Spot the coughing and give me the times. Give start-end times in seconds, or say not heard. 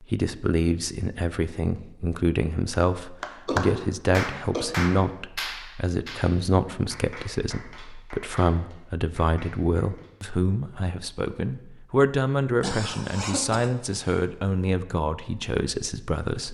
3.5-4.7, 12.6-14.2.